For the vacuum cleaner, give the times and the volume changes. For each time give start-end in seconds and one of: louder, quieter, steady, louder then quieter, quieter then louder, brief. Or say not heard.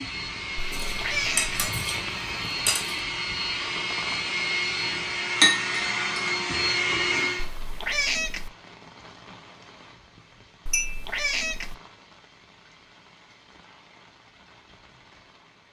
0.0-7.5 louder.